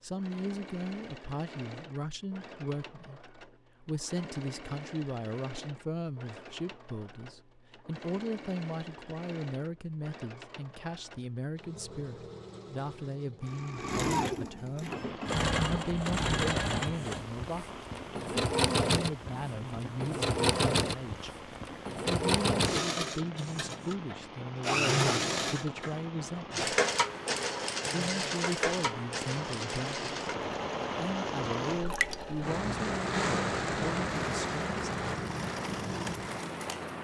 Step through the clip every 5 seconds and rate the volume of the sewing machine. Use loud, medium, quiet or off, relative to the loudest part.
quiet, quiet, medium, loud, loud, loud, medium, medium.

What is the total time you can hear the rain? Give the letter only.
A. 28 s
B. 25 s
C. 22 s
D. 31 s
C.